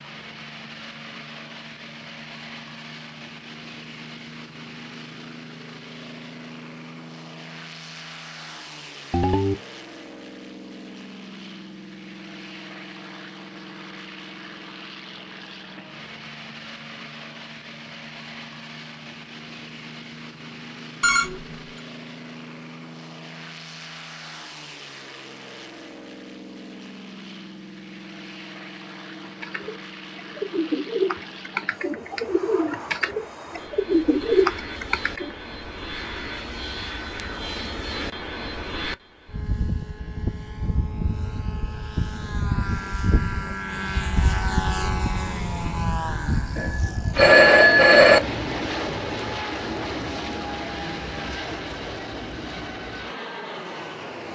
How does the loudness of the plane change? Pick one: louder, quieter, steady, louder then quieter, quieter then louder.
louder.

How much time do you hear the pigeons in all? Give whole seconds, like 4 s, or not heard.
6 s.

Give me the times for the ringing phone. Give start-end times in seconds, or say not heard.
9.1-9.6, 21.0-21.6, 46.5-48.2.